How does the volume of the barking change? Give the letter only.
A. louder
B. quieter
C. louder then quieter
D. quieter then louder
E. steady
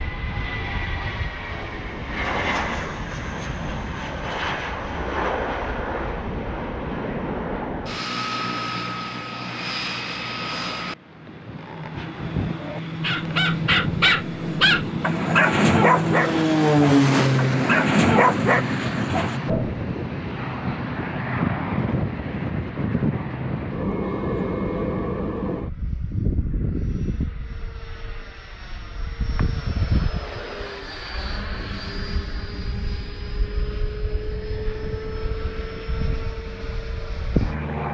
E.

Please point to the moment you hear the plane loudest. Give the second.
17 s.